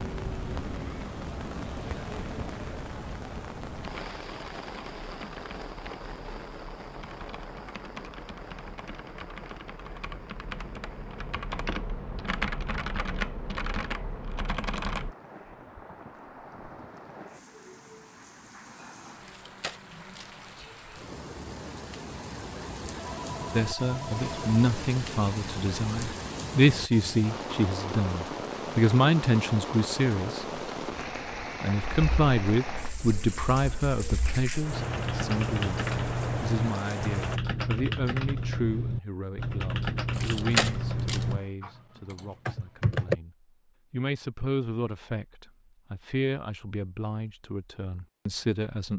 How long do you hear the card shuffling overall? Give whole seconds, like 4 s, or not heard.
3 s.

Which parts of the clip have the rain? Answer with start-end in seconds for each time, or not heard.
0.0-37.4.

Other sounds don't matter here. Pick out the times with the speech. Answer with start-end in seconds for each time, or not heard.
23.5-30.6, 31.6-48.9.